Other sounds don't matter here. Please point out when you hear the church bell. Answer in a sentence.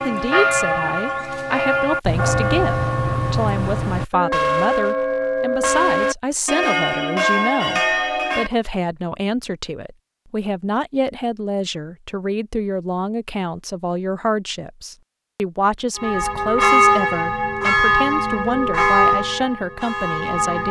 The church bell can be heard from 0.0 to 8.5 s and from 15.9 to 20.6 s.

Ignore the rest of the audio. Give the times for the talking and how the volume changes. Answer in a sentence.
You can hear the talking from 0.0 to 20.6 s, at a steady volume.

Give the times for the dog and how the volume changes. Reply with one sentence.
The dog can't be heard in this clip.